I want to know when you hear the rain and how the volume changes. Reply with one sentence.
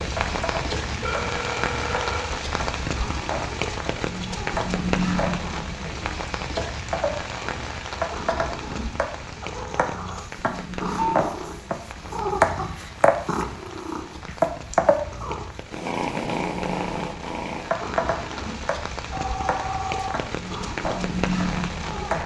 The rain can be heard from 0.0 to 22.2 s, getting quieter then louder.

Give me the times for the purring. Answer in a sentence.
You can hear the purring from 0.1 to 22.2 s.